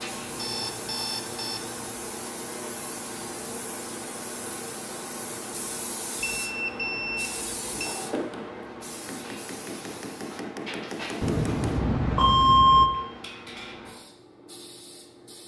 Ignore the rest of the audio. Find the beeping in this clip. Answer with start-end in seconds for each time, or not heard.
0.3-1.6, 6.2-8.0, 11.2-12.9.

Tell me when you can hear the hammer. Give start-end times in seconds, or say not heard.
8.0-11.8.